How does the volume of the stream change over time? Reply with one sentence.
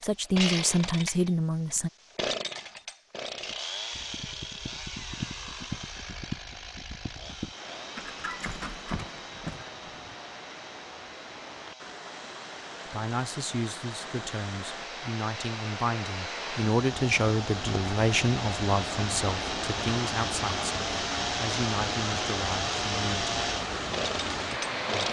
The volume of the stream goes up.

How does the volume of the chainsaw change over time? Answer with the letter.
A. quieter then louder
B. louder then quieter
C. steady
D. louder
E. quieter
A.